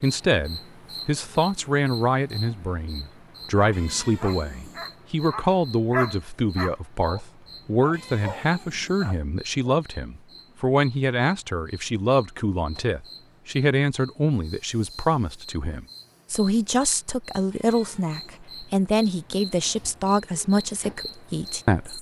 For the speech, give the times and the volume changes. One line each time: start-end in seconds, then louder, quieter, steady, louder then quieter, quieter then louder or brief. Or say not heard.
0.0-21.9 steady.